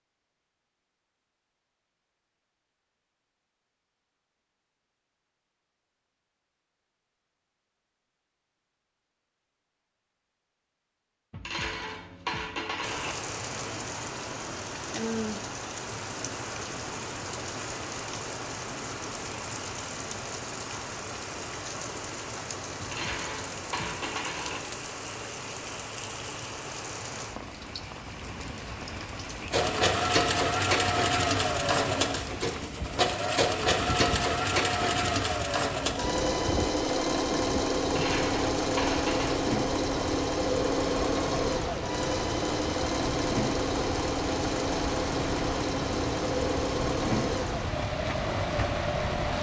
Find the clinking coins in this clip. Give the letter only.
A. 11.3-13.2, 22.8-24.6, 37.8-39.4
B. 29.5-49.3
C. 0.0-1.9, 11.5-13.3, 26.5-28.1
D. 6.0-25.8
A.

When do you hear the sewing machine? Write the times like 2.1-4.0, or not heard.
29.5-49.3.